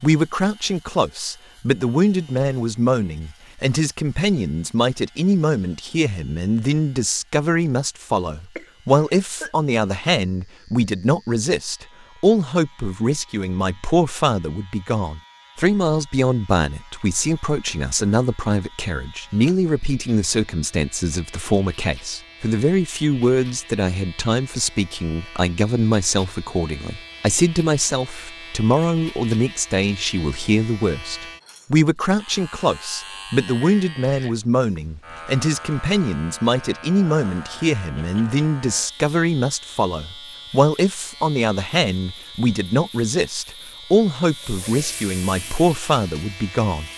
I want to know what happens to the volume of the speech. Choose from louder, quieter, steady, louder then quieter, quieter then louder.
steady.